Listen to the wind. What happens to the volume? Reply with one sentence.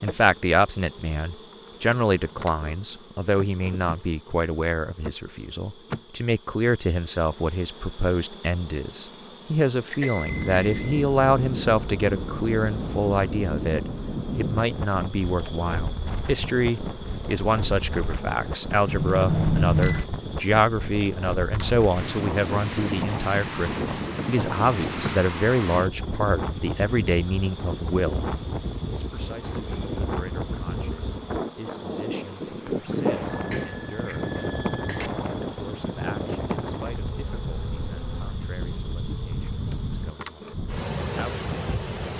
The loudness of the wind stays about the same.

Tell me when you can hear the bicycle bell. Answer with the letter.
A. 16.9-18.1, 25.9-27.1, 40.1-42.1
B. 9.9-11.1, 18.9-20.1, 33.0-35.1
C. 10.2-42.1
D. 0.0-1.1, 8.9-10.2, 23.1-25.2
B.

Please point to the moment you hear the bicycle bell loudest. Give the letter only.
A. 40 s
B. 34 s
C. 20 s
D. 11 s
C.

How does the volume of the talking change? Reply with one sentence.
The loudness of the talking goes down.